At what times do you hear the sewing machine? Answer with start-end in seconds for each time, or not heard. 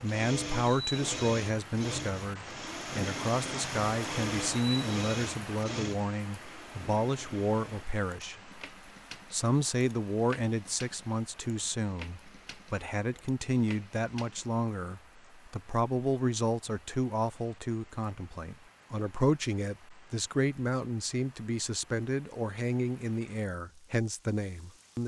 0.0-14.6.